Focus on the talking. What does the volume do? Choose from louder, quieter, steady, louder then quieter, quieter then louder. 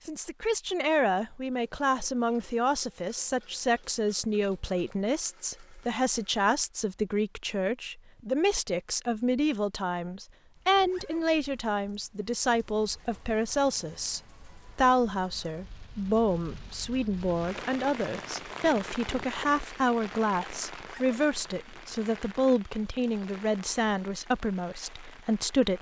steady.